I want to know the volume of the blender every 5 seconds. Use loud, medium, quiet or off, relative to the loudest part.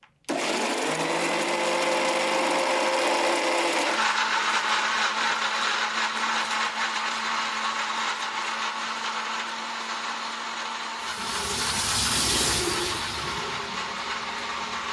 loud, loud, medium.